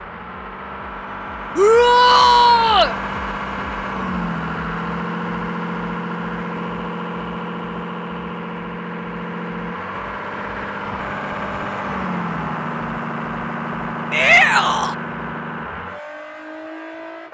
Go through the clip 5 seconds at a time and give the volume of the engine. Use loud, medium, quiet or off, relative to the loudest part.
loud, loud, loud, medium.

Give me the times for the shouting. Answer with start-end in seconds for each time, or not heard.
1.6-3.0, 14.1-14.9.